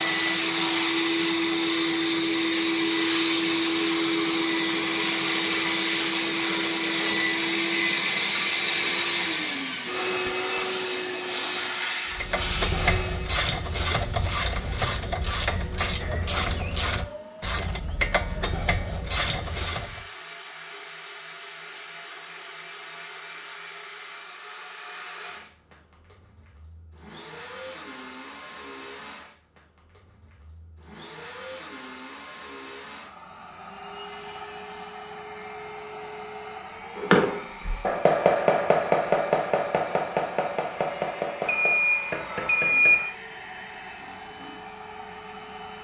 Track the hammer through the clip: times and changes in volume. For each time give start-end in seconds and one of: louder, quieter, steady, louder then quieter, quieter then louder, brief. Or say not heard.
37.0-43.0 quieter.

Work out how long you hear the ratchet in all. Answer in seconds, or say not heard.
8 s.